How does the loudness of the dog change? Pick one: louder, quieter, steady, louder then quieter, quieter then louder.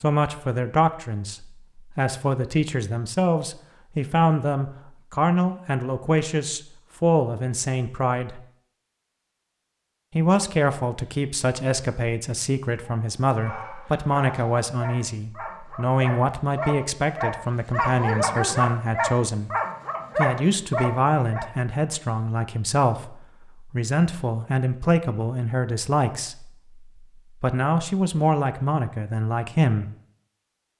louder.